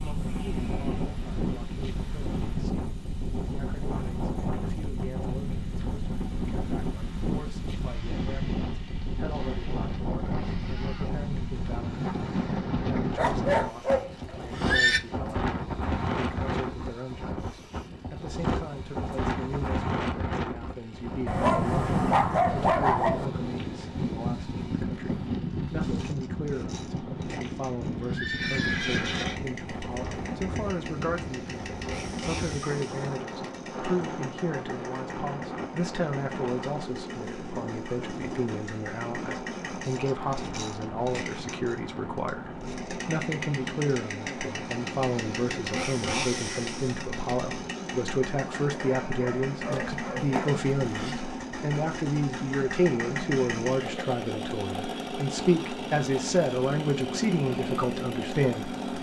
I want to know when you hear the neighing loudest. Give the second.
15 s.